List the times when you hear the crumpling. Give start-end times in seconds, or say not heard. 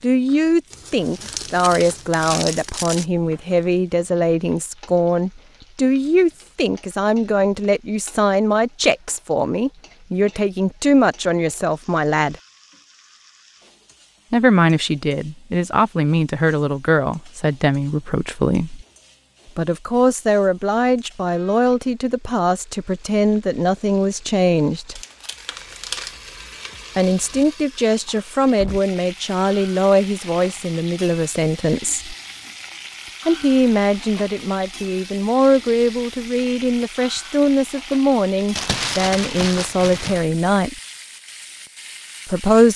0.7-3.0, 24.9-26.1, 38.5-40.2.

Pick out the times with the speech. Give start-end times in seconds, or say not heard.
0.0-12.3, 14.3-18.9, 19.6-25.0, 26.9-32.1, 33.2-40.8, 42.2-42.7.